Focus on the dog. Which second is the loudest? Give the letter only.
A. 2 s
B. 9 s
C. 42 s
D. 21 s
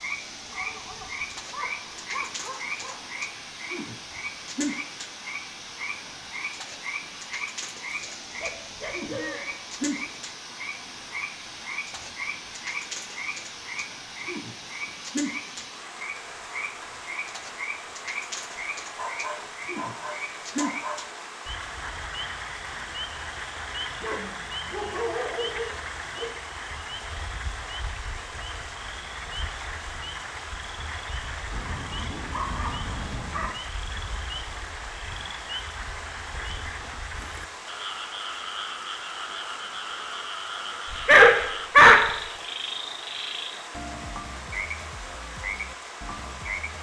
C.